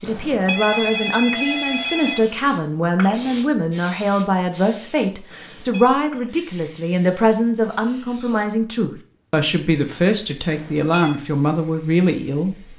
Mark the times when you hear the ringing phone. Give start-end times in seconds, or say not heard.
0.1-2.2, 5.3-6.0, 10.5-11.2.